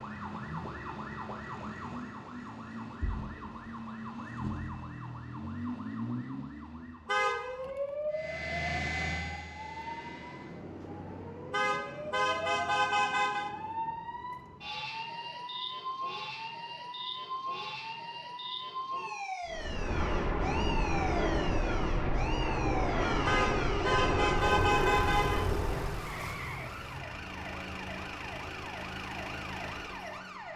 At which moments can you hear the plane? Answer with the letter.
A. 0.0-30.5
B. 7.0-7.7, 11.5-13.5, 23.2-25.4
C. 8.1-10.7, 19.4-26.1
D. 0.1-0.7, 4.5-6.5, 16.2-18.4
C.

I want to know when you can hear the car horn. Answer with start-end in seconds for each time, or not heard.
7.0-7.7, 11.5-13.5, 23.2-25.4.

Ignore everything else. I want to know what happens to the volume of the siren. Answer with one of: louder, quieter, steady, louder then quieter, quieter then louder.
steady.